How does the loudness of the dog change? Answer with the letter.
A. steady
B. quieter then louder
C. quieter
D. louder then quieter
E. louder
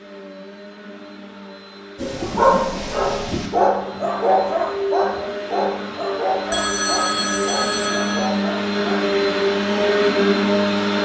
C.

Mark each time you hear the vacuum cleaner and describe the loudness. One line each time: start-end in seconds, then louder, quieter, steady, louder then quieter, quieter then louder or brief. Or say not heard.
0.0-11.0 louder.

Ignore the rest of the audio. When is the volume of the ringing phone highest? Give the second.
7 s.